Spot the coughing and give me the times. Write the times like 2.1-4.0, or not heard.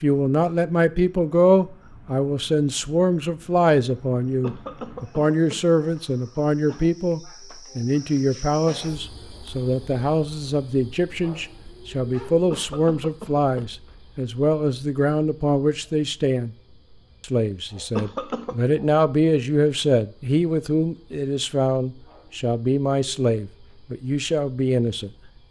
4.4-6.8, 12.5-13.7, 17.9-18.6.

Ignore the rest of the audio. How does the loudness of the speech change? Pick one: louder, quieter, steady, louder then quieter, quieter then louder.
steady.